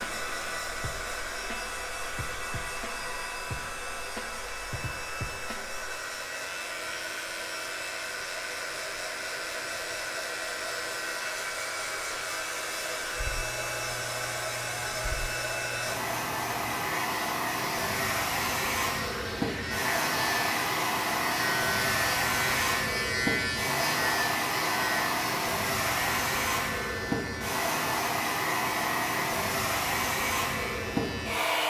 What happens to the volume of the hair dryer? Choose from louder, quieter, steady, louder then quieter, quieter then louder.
louder.